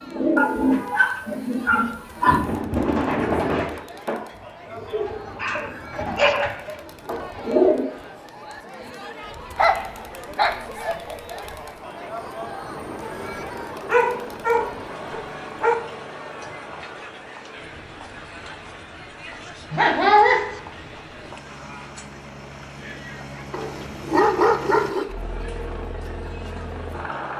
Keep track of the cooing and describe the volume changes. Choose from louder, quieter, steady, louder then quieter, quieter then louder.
quieter.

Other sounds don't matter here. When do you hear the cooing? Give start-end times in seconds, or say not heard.
0.0-7.8.